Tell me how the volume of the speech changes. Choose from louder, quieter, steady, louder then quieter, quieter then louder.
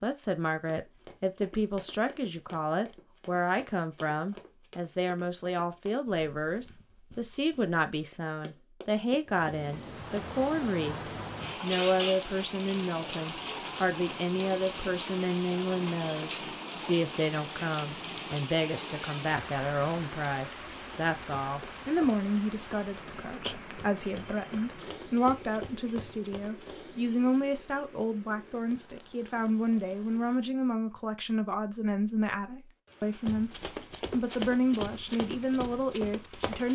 steady.